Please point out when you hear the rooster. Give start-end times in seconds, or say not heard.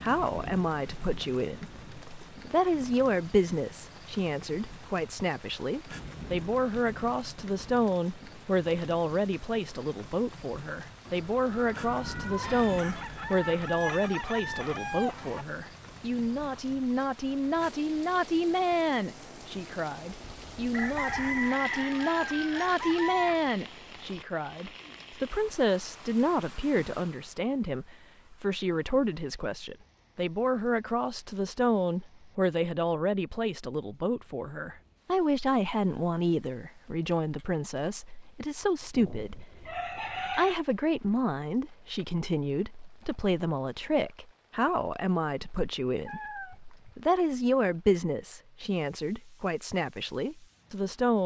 12.4-15.4, 20.7-23.4, 38.9-40.5.